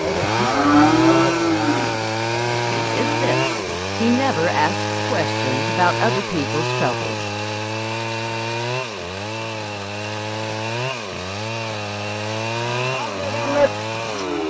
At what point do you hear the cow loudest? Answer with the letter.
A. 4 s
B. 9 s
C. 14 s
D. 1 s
D.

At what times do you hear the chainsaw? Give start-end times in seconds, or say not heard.
0.0-14.4.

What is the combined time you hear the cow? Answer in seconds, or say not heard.
5 s.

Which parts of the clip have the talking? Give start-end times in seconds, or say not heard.
2.8-7.2.